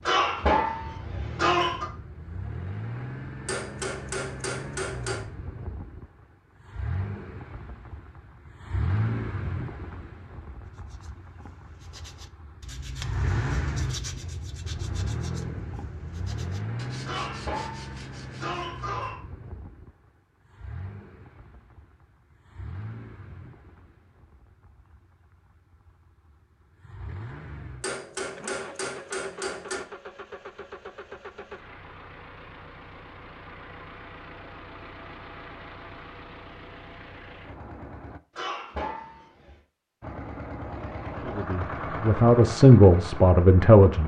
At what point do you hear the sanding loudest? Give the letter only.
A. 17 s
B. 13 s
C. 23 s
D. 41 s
B.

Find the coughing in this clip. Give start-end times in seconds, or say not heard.
0.1-1.9, 17.1-19.2, 38.4-39.5.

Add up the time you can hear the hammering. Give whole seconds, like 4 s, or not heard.
4 s.